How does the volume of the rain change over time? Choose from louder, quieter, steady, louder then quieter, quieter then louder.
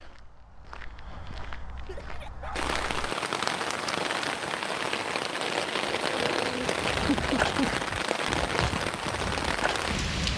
steady.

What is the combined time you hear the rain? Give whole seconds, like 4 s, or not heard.
8 s.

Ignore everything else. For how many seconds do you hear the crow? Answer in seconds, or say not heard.
not heard.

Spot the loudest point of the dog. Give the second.
7 s.